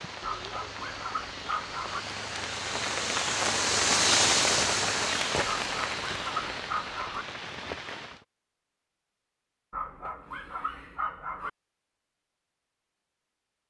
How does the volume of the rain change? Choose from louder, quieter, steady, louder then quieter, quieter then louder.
louder then quieter.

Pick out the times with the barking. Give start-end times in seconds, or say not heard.
0.2-2.0, 5.4-7.2, 9.7-11.5.